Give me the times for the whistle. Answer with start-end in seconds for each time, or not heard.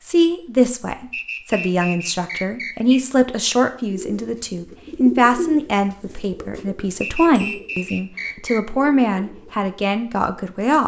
1.1-3.0, 7.0-8.6.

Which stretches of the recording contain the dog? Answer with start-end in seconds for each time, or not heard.
not heard.